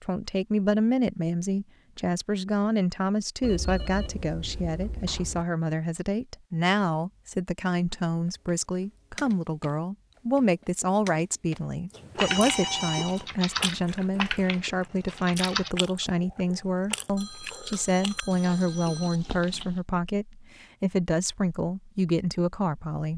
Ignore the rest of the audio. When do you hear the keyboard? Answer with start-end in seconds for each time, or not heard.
8.2-15.7.